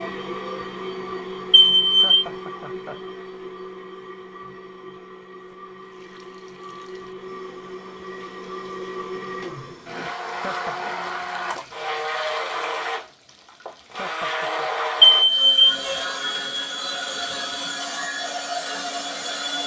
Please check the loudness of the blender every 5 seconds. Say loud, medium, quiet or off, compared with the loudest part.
medium, medium, loud, loud.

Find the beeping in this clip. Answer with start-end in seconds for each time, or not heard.
1.5-2.2, 15.0-15.7.